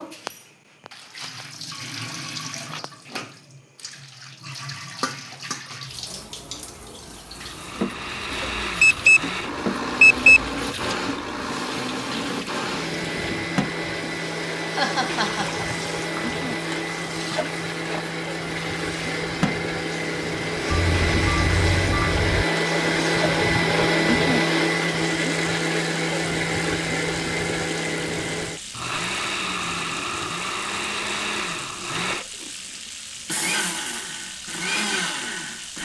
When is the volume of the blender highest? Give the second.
24 s.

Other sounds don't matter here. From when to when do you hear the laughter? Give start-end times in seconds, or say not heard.
14.7-15.7.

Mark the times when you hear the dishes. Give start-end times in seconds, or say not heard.
not heard.